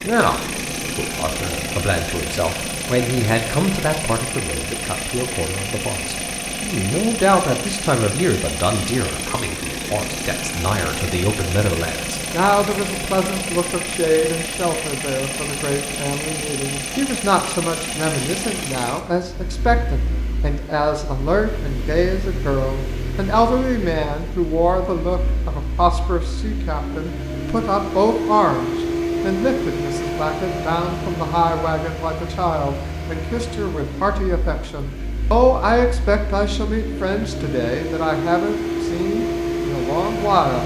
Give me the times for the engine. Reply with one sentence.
You can hear the engine from 0.0 to 40.6 s.